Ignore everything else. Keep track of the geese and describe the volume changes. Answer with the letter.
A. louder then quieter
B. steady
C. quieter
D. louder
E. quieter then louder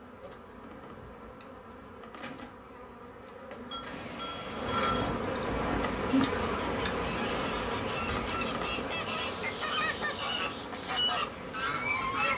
D.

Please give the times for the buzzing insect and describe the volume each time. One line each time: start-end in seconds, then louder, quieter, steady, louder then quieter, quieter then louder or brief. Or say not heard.
0.0-12.3 louder then quieter.